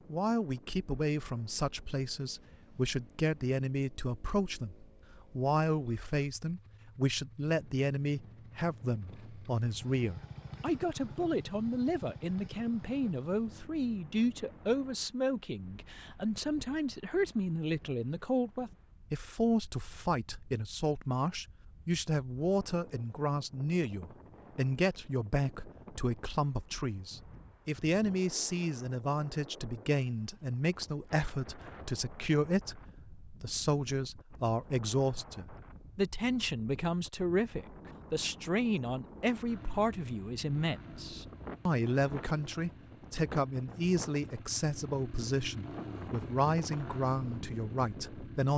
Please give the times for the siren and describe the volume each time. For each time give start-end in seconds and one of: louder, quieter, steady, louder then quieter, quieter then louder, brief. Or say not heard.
not heard.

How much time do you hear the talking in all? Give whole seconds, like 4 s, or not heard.
48 s.